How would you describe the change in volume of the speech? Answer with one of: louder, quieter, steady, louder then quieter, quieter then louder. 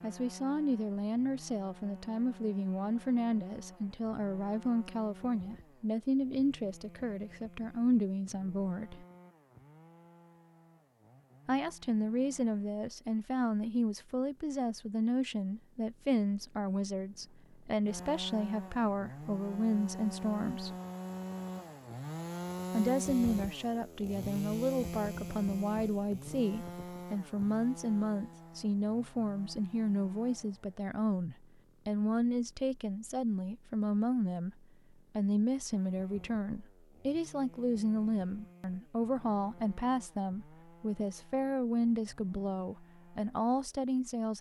steady.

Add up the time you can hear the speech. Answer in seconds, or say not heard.
40 s.